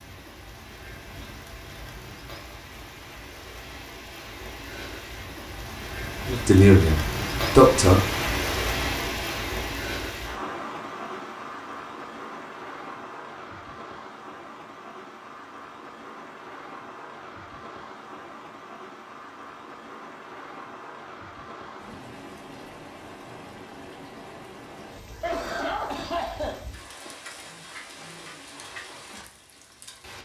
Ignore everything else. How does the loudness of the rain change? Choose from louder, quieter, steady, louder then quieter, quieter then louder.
louder then quieter.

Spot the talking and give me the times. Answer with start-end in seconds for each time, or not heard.
6.2-8.0.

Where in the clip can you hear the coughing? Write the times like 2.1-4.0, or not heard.
25.2-26.6.